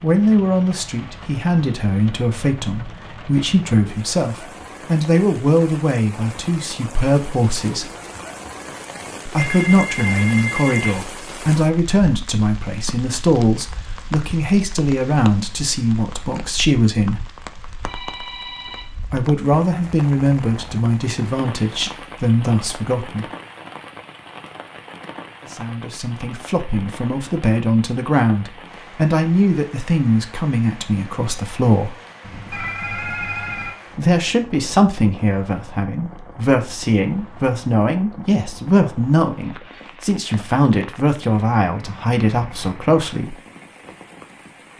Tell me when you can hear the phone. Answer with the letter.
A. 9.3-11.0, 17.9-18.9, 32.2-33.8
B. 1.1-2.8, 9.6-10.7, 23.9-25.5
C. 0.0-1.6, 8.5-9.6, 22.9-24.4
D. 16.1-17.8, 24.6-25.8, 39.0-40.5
A.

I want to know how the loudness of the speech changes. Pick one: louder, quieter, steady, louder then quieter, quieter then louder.
steady.